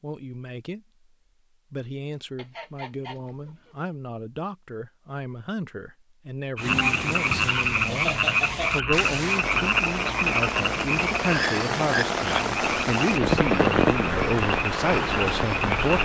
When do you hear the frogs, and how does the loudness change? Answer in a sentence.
The frogs can be heard from 6.5 to 16.0 s, getting quieter.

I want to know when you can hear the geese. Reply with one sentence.
The geese can be heard from 2.4 to 3.8 s.